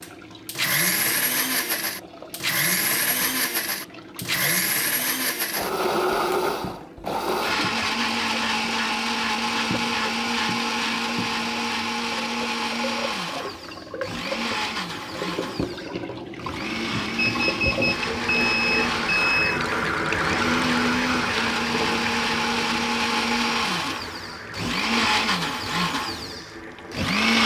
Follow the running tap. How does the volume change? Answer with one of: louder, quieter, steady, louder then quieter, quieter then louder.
louder then quieter.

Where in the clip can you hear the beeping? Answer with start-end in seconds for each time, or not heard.
17.1-19.6.